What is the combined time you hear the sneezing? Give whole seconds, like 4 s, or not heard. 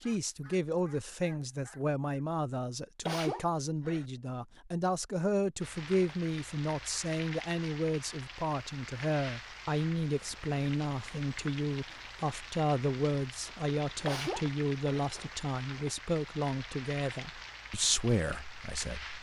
2 s.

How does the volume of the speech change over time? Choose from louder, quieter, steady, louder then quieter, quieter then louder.
steady.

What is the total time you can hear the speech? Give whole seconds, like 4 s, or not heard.
19 s.